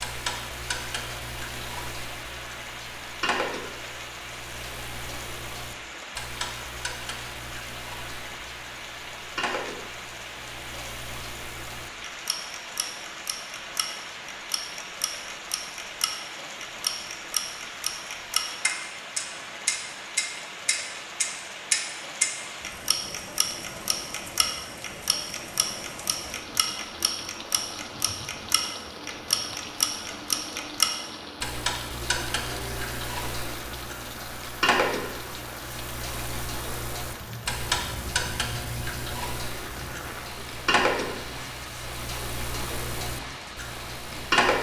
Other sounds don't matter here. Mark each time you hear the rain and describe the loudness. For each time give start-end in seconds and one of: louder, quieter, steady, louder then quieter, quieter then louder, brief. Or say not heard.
0.0-44.5 steady.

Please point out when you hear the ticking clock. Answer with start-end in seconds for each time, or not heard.
0.0-44.5.